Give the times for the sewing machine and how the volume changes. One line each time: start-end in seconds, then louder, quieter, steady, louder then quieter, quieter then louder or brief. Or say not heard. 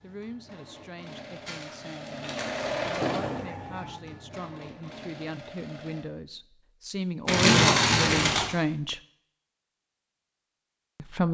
0.0-6.0 louder then quieter.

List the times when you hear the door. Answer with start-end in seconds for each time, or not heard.
not heard.